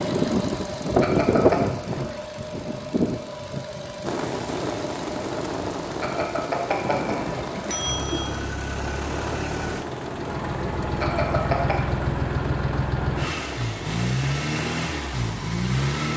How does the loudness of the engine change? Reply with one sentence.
The volume of the engine goes down, then up.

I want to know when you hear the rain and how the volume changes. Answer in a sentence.
You can hear the rain from 4.0 to 16.1 s, getting quieter.